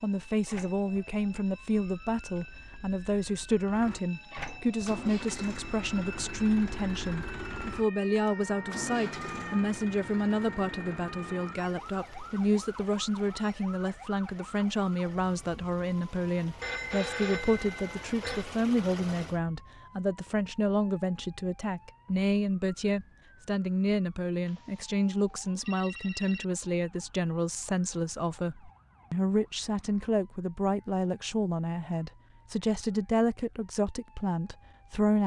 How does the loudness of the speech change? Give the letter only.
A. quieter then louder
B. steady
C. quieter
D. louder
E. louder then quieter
B.